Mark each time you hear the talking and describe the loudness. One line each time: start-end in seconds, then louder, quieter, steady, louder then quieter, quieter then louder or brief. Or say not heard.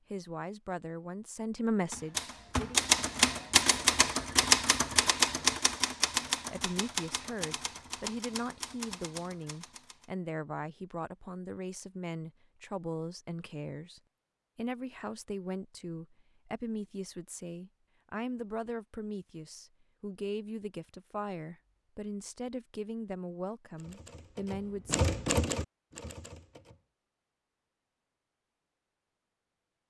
0.1-2.9 brief
6.5-25.1 steady.